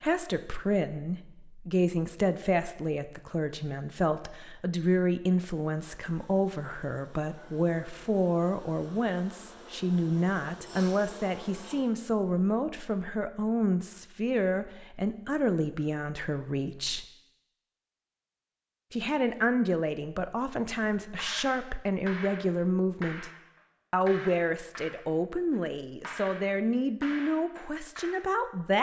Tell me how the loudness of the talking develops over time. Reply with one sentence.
The loudness of the talking stays about the same.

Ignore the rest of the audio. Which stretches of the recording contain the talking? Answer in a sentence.
You can hear the talking from 0.0 to 17.1 s, from 18.9 to 23.3 s and from 23.9 to 28.7 s.